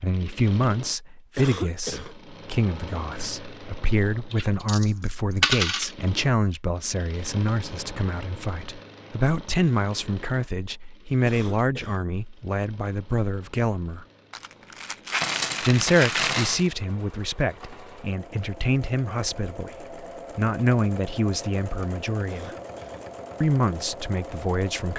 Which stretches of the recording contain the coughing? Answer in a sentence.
The coughing can be heard from 1.4 to 2.1 s, from 11.2 to 12.1 s and from 22.2 to 23.1 s.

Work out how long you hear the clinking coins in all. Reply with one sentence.
The clinking coins can be heard for 4 seconds in total.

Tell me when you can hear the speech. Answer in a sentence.
The speech can be heard from 0.0 to 14.1 s, from 15.6 to 22.6 s and from 23.4 to 24.9 s.